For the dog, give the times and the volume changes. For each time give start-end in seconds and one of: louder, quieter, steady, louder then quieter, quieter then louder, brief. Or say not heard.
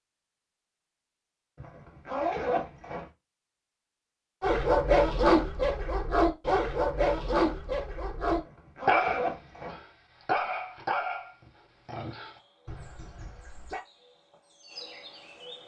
4.4-13.8 quieter.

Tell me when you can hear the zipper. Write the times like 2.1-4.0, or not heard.
1.6-3.1, 8.3-9.8.